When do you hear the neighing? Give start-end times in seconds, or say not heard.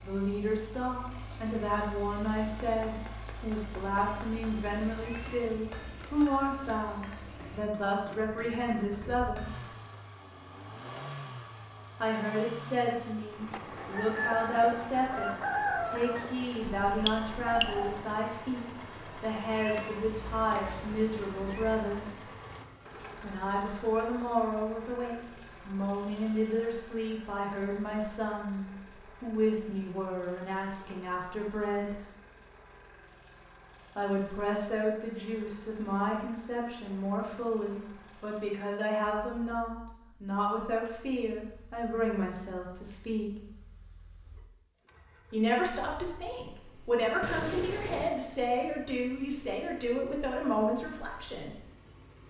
not heard.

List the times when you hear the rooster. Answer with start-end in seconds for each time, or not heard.
13.5-18.0.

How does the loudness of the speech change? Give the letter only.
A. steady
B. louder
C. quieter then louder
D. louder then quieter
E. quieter
A.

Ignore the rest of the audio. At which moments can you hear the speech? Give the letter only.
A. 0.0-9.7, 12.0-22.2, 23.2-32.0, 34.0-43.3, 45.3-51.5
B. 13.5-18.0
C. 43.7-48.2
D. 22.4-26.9
A.